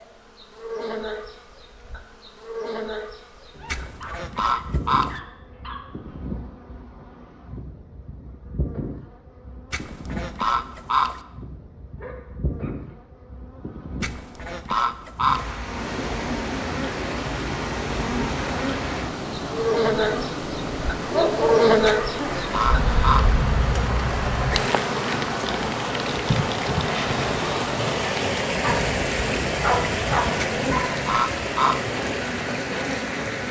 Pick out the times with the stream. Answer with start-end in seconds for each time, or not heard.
15.6-33.4.